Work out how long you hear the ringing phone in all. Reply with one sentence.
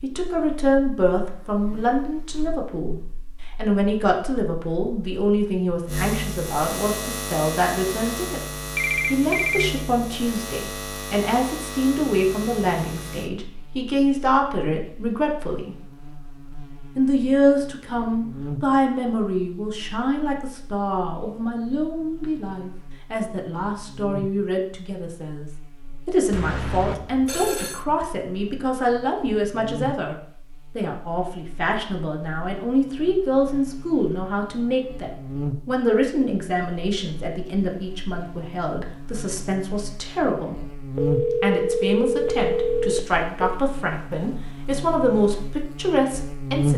You can hear the ringing phone for 5 seconds altogether.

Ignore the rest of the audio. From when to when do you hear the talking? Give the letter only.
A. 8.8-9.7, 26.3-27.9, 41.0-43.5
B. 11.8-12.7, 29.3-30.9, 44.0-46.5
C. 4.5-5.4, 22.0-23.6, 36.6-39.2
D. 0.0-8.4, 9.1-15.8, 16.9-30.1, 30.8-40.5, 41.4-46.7
D.